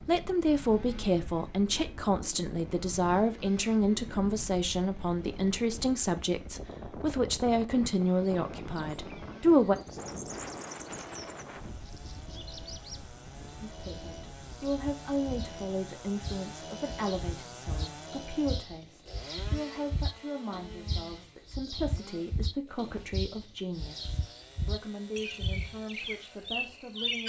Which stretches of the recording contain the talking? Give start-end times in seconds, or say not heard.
0.0-9.8, 13.6-27.2.